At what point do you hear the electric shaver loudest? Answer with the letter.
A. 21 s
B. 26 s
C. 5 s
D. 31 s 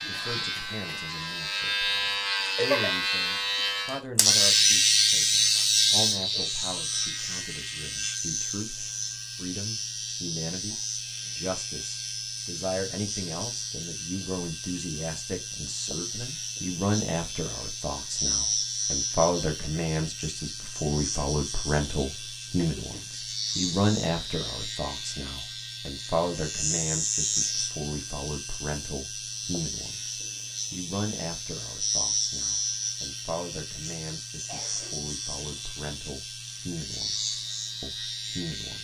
C.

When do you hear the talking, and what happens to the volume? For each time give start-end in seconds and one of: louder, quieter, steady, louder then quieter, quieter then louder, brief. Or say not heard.
0.0-38.7 louder then quieter.